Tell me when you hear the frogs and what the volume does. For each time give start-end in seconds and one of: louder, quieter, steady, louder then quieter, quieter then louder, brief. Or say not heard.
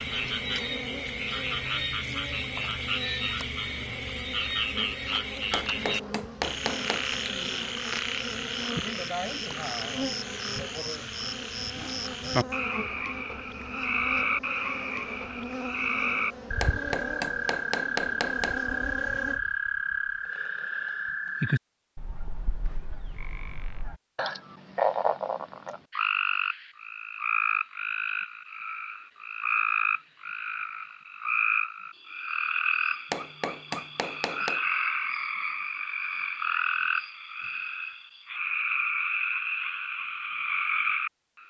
0.0-41.4 steady.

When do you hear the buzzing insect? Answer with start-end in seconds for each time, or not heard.
0.0-19.4.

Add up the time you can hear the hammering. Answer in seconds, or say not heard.
5 s.